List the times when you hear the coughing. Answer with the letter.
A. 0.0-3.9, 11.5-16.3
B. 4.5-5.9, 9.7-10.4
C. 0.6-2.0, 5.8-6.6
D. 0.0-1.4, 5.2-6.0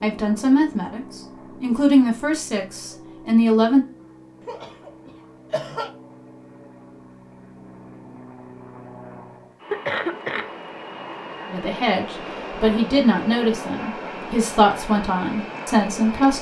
B.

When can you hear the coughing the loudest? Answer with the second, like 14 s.
10 s.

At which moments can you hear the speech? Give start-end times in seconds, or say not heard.
0.0-3.9, 11.5-16.3.